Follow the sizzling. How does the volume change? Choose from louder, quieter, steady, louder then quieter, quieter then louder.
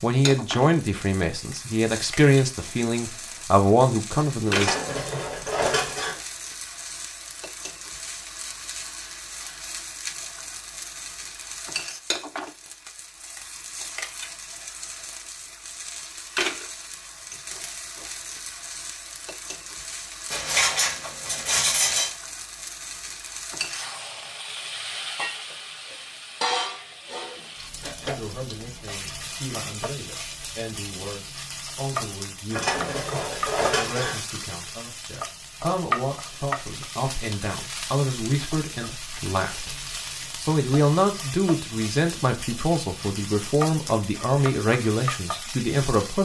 steady.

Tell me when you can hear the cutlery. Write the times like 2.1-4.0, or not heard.
4.5-6.2, 20.3-22.1, 32.5-34.2.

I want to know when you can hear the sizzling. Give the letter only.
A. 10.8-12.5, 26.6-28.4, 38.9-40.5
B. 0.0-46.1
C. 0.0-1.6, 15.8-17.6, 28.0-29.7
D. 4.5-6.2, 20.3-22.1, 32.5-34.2
B.